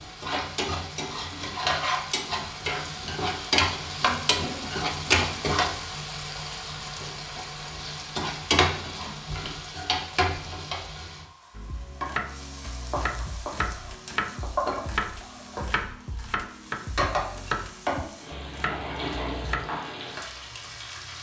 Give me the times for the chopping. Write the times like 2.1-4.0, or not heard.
11.6-19.6.